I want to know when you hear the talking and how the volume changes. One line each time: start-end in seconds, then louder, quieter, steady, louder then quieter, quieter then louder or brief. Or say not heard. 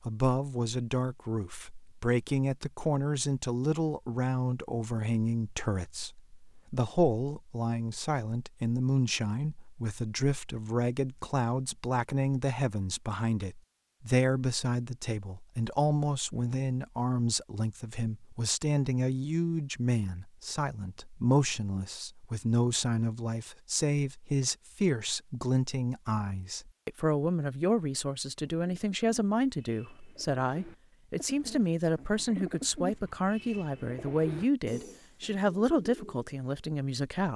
0.0-37.3 steady.